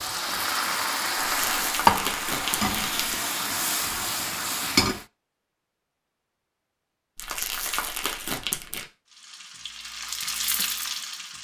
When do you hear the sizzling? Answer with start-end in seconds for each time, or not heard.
0.0-5.0, 9.1-11.3.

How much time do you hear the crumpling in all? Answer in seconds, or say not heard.
4 s.